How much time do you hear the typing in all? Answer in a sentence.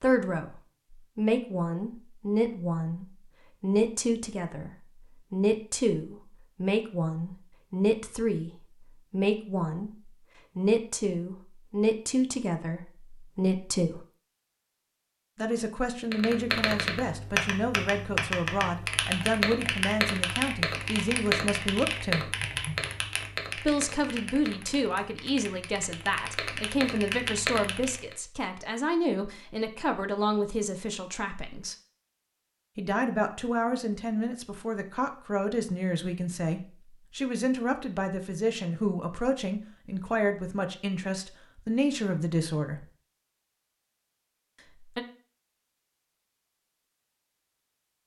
You can hear the typing for 12 seconds altogether.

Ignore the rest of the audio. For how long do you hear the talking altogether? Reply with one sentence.
The talking can be heard for 39 seconds in total.